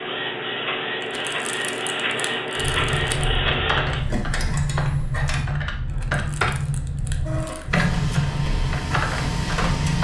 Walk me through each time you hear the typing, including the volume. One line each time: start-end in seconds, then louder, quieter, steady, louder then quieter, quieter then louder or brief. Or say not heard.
2.5-9.9 steady.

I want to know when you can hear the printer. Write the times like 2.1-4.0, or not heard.
0.0-5.5, 7.2-9.9.